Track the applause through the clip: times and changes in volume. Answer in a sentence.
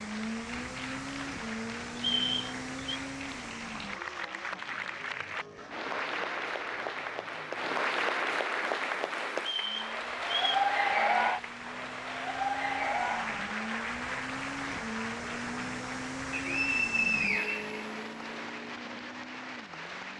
The applause can be heard from 0.0 to 20.1 s, getting louder then quieter.